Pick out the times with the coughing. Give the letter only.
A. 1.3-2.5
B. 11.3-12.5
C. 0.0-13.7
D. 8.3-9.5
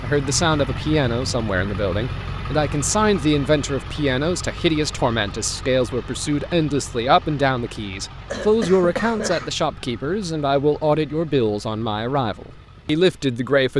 D.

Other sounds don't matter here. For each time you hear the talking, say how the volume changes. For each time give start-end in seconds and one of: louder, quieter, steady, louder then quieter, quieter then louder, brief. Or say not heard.
0.0-13.7 steady.